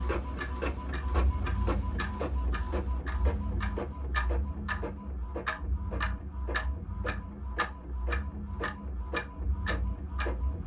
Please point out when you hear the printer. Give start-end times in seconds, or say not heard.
0.0-10.6.